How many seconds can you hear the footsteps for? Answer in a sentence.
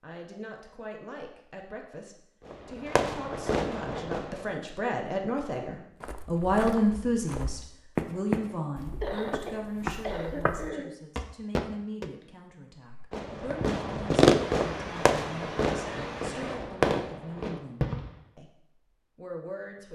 The footsteps can be heard for 6 seconds in total.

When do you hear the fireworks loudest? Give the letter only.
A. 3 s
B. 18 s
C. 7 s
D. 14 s
D.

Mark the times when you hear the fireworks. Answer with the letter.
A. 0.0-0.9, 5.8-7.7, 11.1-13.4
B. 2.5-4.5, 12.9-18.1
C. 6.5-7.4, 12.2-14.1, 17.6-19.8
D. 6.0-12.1
B.